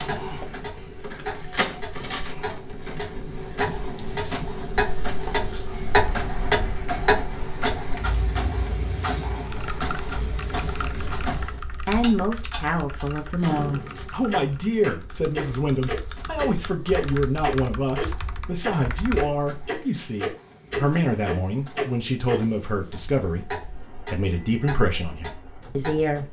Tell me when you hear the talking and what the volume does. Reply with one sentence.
The talking can be heard from 11.8 to 26.2 s, at a steady volume.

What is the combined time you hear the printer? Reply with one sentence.
You can hear the printer for 26 seconds altogether.